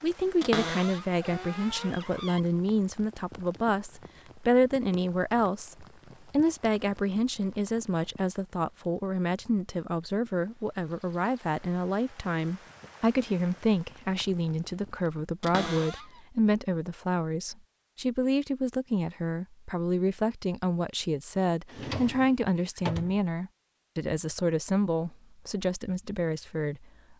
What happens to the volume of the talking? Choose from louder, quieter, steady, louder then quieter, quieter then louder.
steady.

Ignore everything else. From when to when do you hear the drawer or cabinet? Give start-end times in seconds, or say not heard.
0.4-2.4, 15.4-16.1, 21.6-23.2.